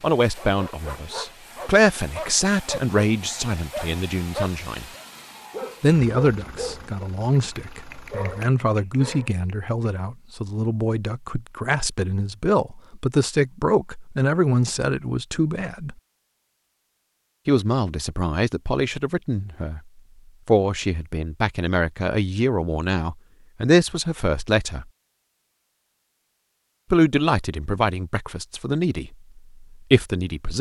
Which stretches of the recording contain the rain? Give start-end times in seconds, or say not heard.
not heard.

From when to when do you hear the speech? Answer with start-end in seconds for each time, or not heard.
0.0-4.8, 5.8-15.9, 17.4-19.8, 20.4-24.9, 26.9-30.5.